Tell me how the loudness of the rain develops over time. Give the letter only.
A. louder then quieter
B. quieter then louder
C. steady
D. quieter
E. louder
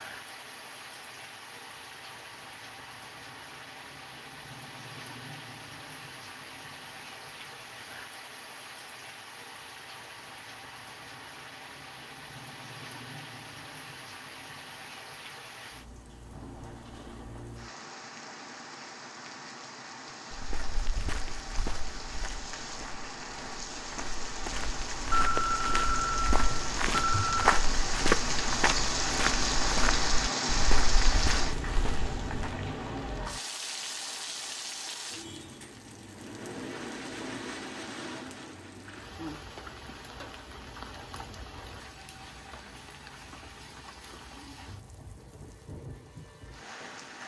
A.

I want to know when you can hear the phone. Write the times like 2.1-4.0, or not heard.
25.1-27.4.